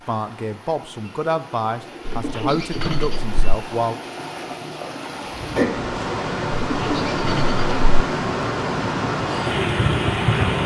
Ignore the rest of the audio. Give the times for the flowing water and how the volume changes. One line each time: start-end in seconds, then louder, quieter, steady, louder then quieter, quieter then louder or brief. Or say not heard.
0.0-10.6 louder.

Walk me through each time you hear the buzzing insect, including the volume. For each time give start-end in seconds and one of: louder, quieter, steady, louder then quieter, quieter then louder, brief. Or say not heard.
5.9-10.6 louder.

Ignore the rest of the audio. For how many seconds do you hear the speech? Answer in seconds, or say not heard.
4 s.